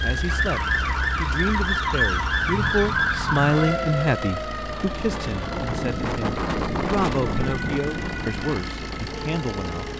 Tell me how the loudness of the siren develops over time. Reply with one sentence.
The loudness of the siren goes down.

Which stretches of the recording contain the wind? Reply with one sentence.
The wind can be heard from 4.5 to 9.9 s.